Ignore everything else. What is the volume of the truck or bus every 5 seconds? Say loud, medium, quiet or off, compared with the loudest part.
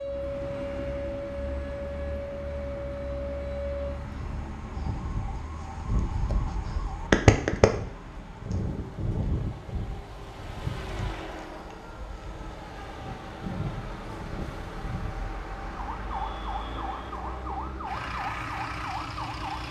loud, medium, loud, loud.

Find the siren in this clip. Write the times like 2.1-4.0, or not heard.
0.0-19.6.